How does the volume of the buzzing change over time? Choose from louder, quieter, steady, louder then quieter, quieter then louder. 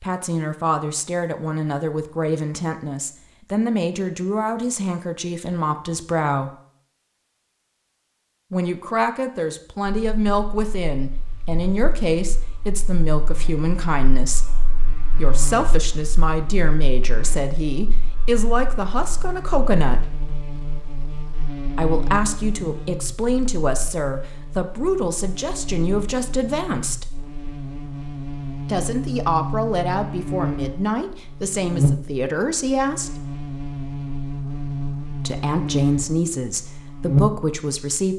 louder.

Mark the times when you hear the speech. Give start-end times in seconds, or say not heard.
0.0-6.5, 8.5-14.6, 15.2-20.2, 21.8-27.1, 28.6-33.3, 35.2-38.1.